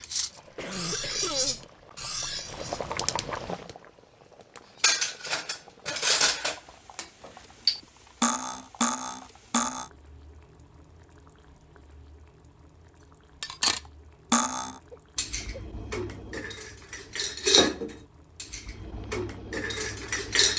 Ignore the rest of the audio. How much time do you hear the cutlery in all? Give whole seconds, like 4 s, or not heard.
15 s.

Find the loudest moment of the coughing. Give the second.
1 s.